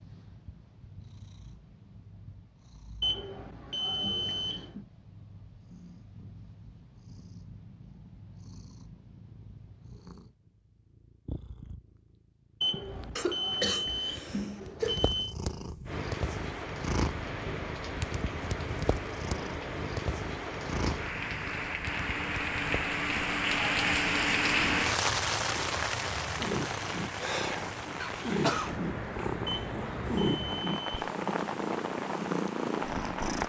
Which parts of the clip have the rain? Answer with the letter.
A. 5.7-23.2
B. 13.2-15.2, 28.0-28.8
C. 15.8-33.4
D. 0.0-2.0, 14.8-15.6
C.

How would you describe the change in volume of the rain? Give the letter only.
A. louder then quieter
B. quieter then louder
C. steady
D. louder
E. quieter
A.